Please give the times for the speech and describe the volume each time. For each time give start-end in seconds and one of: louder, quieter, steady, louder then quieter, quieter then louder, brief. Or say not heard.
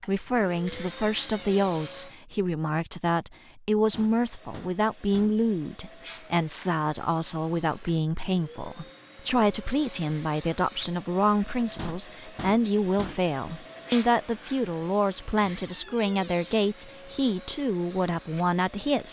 0.1-19.0 steady.